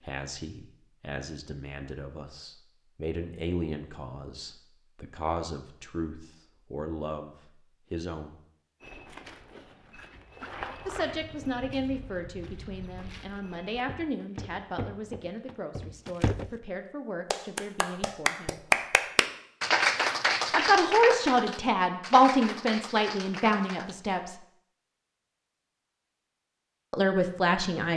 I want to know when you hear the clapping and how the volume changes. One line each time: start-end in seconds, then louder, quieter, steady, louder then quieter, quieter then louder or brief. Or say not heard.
17.3-23.9 quieter.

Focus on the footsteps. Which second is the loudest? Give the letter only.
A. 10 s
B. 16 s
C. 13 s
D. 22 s
B.